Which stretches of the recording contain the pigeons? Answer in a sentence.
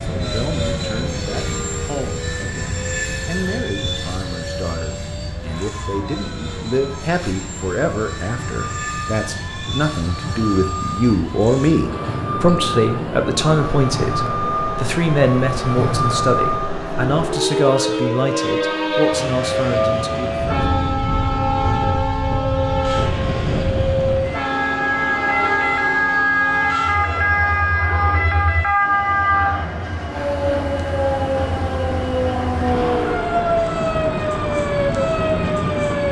The pigeons can't be heard in this clip.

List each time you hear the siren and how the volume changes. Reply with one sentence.
You can hear the siren from 0.0 to 36.0 s, getting louder.